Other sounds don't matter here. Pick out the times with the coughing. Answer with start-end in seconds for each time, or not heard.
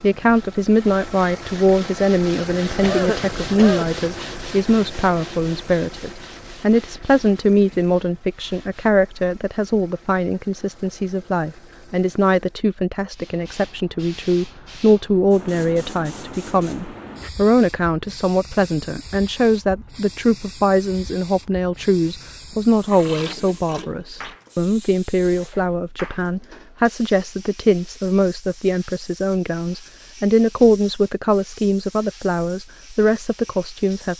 2.6-4.0.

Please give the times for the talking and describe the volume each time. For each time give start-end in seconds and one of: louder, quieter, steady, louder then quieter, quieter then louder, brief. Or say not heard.
0.0-34.1 steady.